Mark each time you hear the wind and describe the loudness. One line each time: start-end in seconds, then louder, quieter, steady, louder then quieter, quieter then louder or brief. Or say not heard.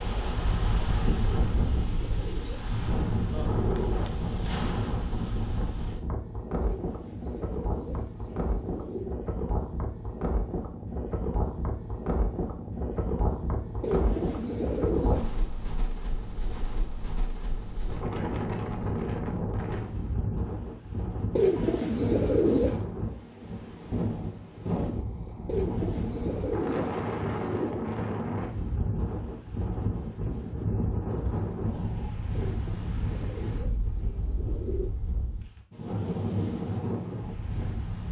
0.0-38.0 steady.